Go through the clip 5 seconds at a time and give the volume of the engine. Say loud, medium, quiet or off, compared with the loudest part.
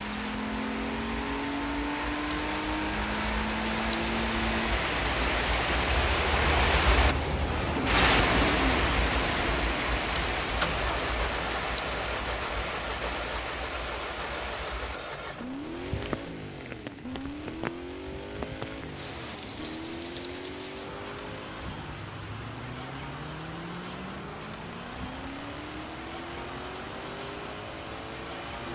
loud, loud, loud, medium, medium, medium.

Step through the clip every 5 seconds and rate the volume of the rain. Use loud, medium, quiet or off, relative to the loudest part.
medium, loud, medium, quiet, quiet, quiet.